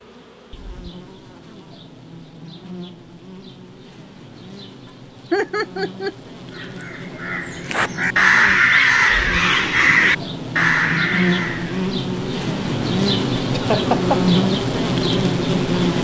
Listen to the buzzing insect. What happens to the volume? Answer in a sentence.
The volume of the buzzing insect goes up.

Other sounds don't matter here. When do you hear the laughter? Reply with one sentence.
You can hear the laughter from 5.3 to 6.2 s and from 13.5 to 14.2 s.